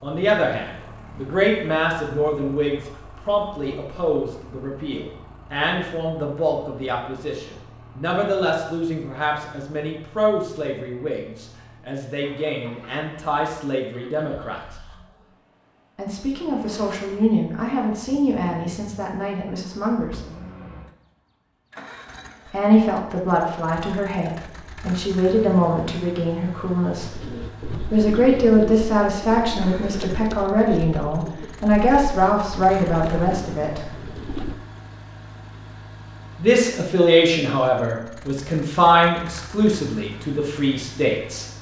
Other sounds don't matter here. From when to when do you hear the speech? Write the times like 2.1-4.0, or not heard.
0.0-14.6, 15.9-20.2, 22.5-27.1, 27.9-33.9, 36.4-41.5.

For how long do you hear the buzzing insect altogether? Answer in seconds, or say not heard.
not heard.